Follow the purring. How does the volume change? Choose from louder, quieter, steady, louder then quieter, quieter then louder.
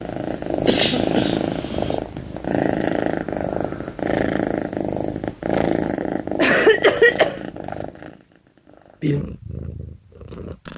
quieter.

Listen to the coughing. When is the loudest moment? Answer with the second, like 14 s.
7 s.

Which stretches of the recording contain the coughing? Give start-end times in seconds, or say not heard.
0.7-2.0, 6.0-7.4.